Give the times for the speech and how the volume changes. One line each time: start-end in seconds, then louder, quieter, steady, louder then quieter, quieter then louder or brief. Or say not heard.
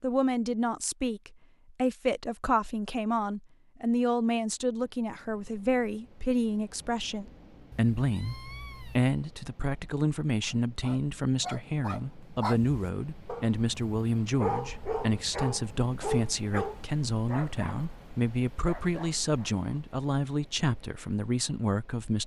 0.0-22.2 steady.